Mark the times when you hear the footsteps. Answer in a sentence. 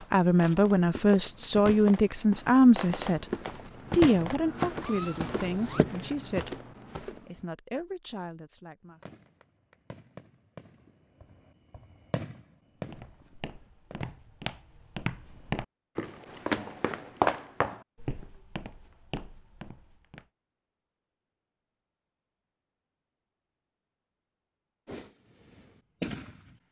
The footsteps can be heard from 0.0 to 7.4 s and from 12.9 to 20.2 s.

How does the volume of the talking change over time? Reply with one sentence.
The loudness of the talking goes down.